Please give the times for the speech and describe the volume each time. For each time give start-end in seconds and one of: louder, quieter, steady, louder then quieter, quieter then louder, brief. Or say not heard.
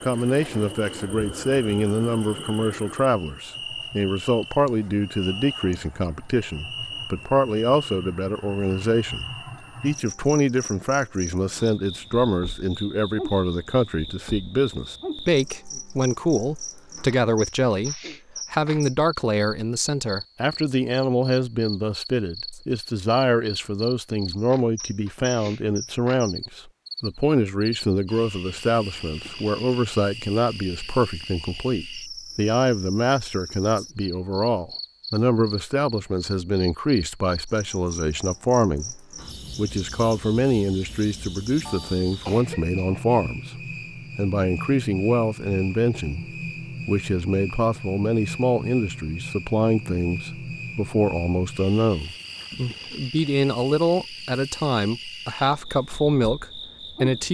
0.0-57.2 steady.